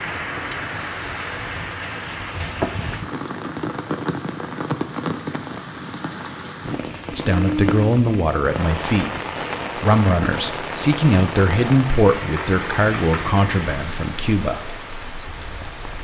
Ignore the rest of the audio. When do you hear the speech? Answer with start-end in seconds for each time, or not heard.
7.1-9.1, 9.8-14.7.